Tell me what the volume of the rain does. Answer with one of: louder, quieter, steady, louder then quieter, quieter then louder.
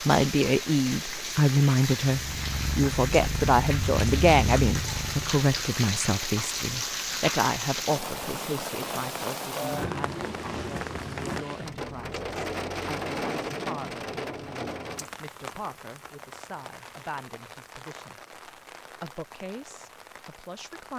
quieter.